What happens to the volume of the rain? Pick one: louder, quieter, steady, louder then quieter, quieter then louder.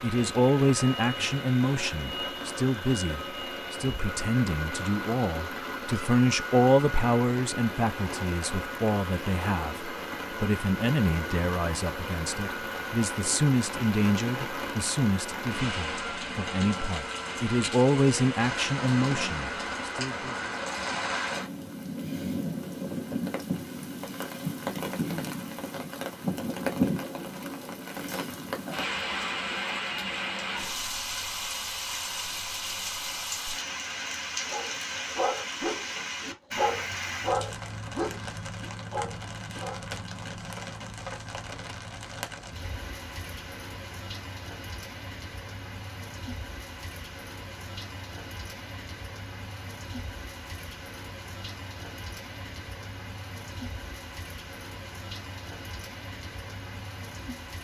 louder then quieter.